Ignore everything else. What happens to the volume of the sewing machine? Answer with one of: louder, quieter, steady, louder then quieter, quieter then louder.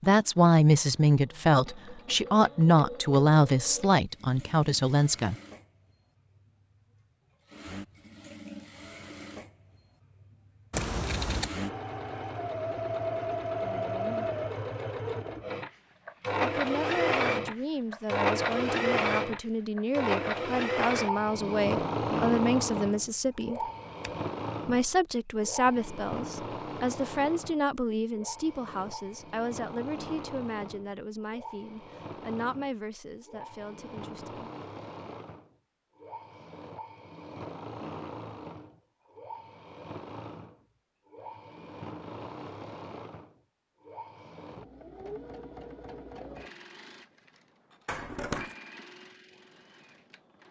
louder then quieter.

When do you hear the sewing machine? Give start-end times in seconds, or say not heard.
0.0-50.4.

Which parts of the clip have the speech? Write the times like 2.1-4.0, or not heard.
0.0-5.3, 16.4-23.6, 24.6-34.5.